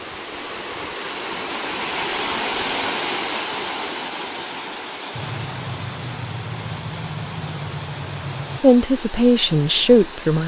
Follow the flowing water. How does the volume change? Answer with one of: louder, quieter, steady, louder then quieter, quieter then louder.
quieter.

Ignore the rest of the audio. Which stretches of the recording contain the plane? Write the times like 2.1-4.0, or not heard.
5.1-8.6.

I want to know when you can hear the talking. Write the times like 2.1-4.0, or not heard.
8.6-10.4.